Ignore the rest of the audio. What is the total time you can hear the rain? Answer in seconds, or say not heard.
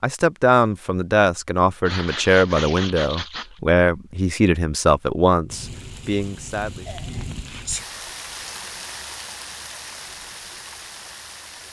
6 s.